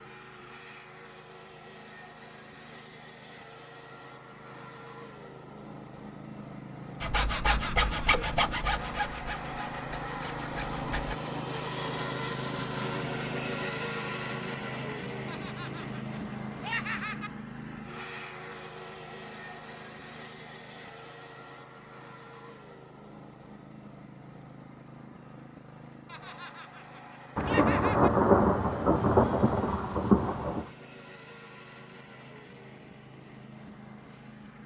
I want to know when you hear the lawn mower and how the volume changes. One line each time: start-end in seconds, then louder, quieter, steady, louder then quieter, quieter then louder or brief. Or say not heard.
0.0-34.6 louder then quieter.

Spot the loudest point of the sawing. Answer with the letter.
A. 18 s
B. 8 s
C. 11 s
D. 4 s
B.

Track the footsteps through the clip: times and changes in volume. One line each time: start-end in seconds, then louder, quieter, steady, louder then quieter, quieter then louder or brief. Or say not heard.
not heard.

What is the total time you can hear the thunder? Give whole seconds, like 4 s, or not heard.
3 s.